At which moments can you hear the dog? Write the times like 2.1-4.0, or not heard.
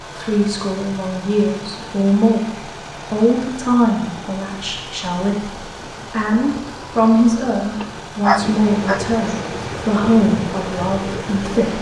7.8-9.3.